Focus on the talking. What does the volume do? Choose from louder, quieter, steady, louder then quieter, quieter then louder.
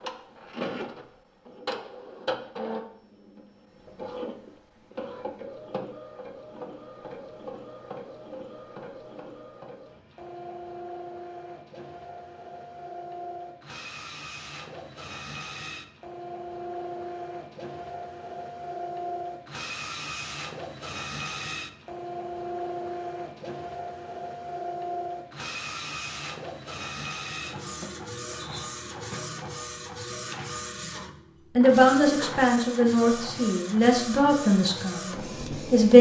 quieter.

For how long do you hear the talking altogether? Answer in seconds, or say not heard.
4 s.